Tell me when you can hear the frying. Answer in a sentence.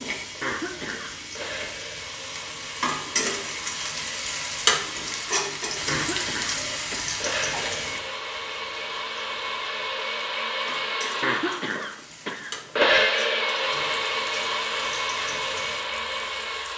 You can hear the frying from 0.0 to 16.7 s.